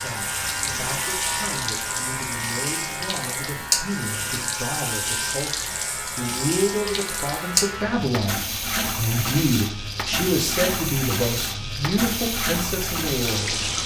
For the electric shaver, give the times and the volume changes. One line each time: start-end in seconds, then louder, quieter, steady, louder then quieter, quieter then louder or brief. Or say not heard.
0.0-13.8 steady.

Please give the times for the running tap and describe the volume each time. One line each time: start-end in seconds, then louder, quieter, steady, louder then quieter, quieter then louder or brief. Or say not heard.
0.0-13.8 steady.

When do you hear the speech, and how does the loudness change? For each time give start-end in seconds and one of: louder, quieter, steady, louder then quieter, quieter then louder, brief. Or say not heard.
0.0-13.6 louder.